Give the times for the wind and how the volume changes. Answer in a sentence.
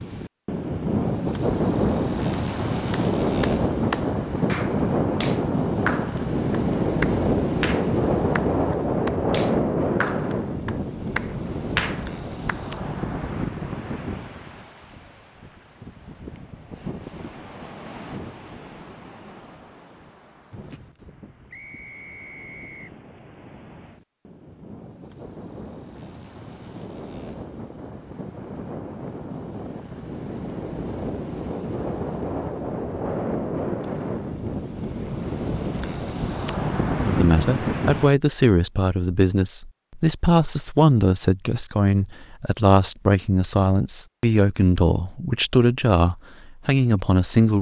You can hear the wind from 0.0 to 38.1 s, getting quieter then louder.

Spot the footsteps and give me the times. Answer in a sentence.
The footsteps can't be heard in this clip.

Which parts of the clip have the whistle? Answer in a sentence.
The whistle can be heard from 21.5 to 22.9 s.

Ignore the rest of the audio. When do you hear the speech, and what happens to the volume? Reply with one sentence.
The speech can be heard from 37.0 to 47.5 s, at a steady volume.